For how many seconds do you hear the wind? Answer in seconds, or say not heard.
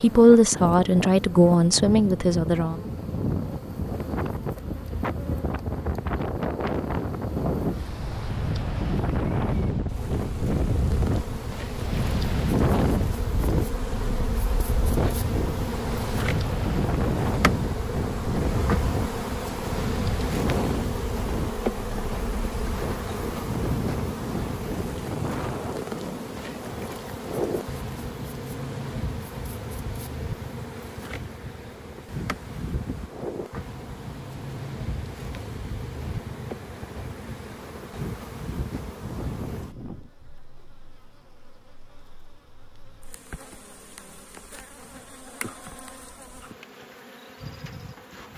40 s.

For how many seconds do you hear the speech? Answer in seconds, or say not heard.
3 s.